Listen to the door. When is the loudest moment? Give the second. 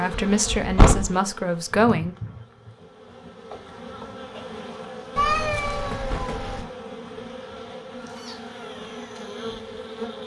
1 s.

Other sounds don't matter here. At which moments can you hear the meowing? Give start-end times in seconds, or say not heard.
1.7-2.7, 5.2-6.7.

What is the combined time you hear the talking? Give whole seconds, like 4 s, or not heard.
2 s.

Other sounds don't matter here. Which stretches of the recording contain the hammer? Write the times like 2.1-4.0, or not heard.
not heard.